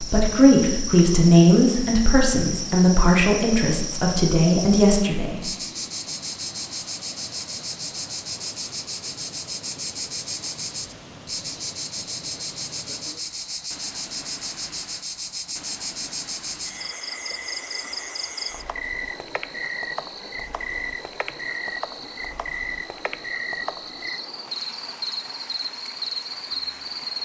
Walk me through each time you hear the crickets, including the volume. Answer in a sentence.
The crickets can be heard from 0.0 to 27.2 s, at a steady volume.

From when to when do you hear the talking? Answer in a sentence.
You can hear the talking from 0.0 to 5.5 s.